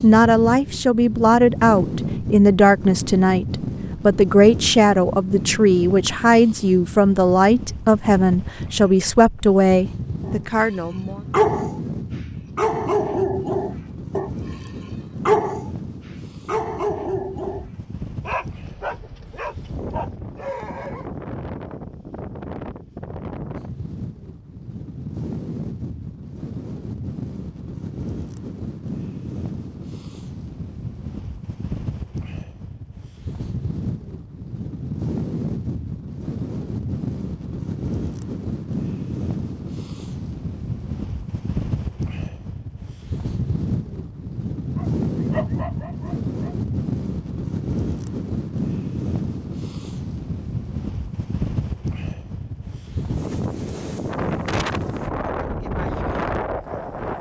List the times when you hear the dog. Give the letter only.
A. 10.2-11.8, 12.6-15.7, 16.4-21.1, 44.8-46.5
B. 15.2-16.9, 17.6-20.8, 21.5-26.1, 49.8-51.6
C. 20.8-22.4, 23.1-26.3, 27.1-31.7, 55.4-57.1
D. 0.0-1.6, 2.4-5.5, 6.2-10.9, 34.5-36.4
A.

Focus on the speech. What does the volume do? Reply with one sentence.
The volume of the speech stays about the same.